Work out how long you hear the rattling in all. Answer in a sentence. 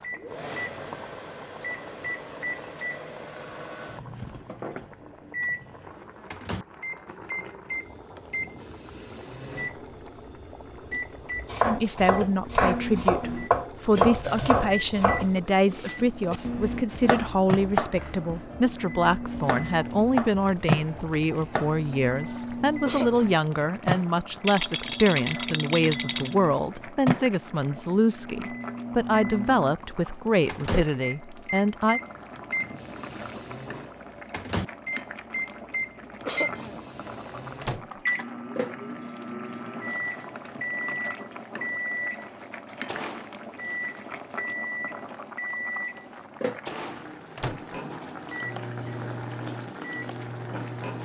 You can hear the rattling for 2 seconds altogether.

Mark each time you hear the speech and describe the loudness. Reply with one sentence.
You can hear the speech from 11.7 to 32.0 s, at a steady volume.